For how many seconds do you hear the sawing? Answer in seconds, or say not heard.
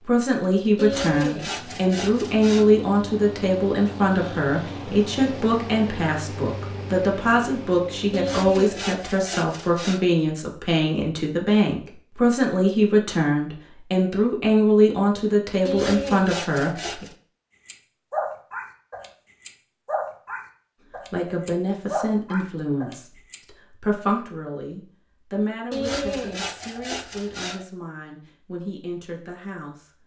7 s.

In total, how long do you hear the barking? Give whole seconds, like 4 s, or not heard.
6 s.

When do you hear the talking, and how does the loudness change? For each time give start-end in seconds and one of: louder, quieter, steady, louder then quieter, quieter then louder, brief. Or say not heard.
0.0-17.1 steady
21.1-30.0 quieter.